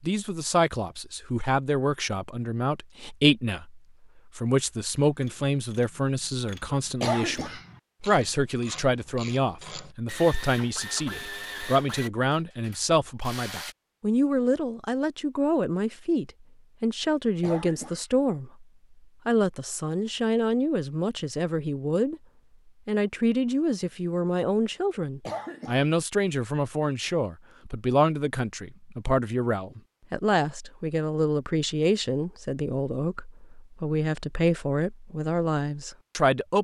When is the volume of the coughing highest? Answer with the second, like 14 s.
7 s.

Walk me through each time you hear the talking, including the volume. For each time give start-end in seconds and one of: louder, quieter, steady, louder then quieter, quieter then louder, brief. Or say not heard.
0.0-18.6 steady
19.2-22.2 brief
22.9-36.6 steady.